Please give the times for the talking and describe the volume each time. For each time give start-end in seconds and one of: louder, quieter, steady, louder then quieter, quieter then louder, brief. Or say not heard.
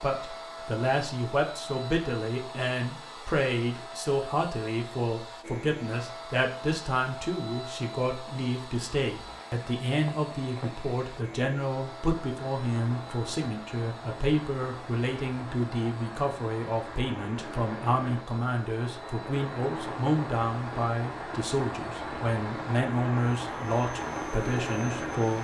0.0-25.3 steady.